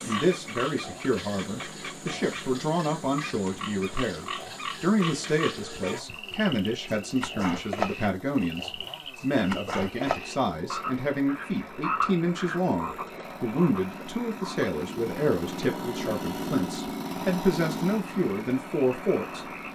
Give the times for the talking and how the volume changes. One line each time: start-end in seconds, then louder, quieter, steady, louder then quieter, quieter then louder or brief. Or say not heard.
0.0-19.4 steady.